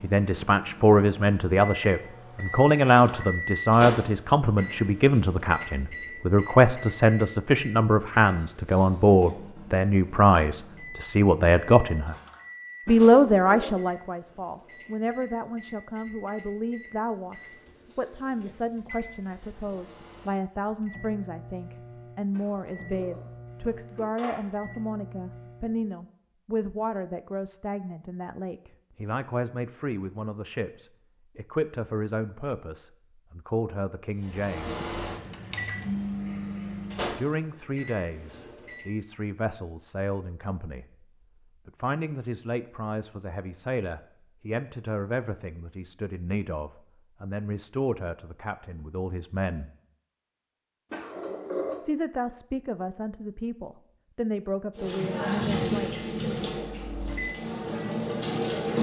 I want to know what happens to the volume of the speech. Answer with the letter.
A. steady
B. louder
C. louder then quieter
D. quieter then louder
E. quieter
E.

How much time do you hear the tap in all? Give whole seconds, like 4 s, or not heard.
4 s.